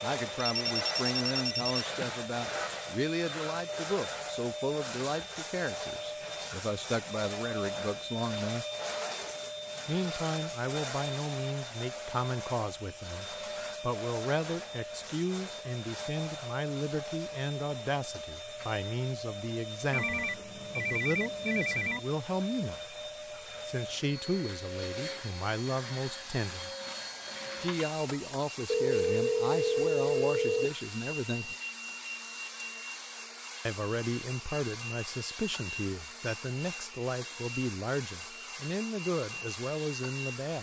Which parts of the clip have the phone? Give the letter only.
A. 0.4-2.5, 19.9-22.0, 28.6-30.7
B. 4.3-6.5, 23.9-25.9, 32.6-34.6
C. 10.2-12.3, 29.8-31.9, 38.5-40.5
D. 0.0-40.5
A.